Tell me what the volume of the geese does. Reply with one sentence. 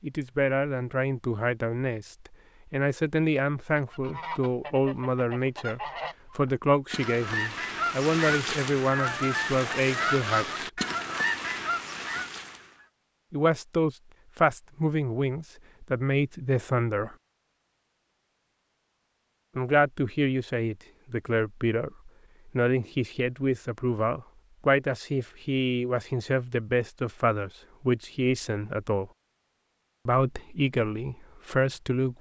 The loudness of the geese goes up.